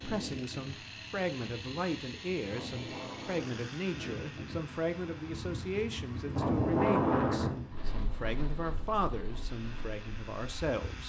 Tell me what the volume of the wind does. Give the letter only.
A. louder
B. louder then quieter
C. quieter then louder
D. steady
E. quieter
B.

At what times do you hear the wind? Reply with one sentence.
The wind can be heard from 0.0 to 11.0 s.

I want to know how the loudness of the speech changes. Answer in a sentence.
The volume of the speech stays about the same.